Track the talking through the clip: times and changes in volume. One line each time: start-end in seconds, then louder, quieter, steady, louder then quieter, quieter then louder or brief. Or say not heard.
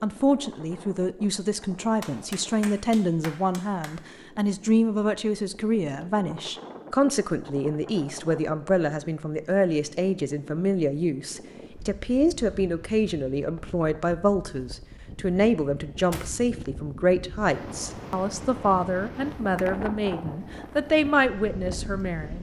0.0-22.3 steady.